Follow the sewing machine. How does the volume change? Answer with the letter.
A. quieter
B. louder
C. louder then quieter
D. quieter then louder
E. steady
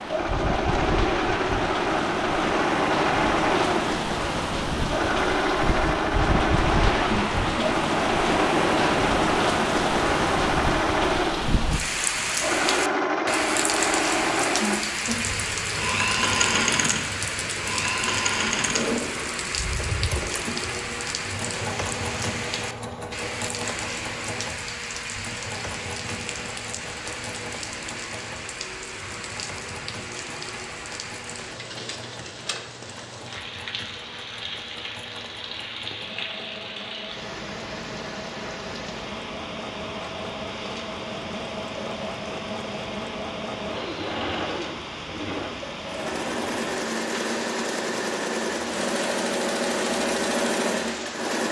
D.